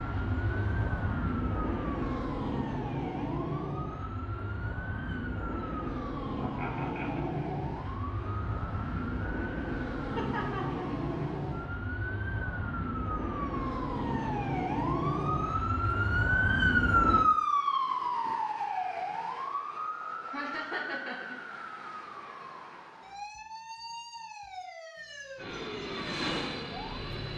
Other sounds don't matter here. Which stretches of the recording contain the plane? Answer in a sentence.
The plane can be heard from 0.0 to 17.3 s and from 25.4 to 27.3 s.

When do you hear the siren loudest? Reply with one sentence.
The loudest moment of the siren is at 17 seconds.